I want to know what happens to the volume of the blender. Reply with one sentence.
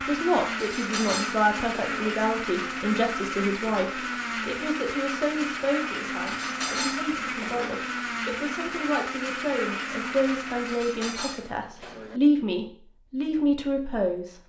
The volume of the blender stays about the same.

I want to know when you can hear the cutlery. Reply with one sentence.
You can hear the cutlery from 0.6 to 2.1 s, from 6.2 to 7.8 s and from 10.7 to 12.2 s.